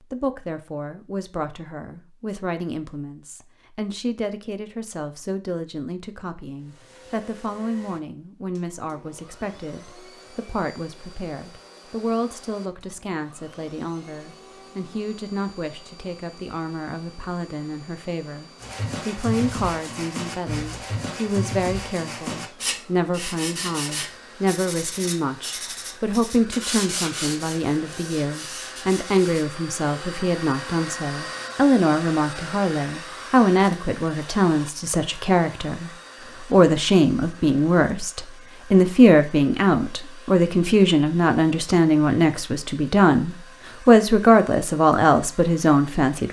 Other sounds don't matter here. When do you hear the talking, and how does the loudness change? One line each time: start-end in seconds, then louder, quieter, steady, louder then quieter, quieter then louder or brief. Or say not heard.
0.0-46.2 louder.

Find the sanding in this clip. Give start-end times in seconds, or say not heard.
18.6-29.4.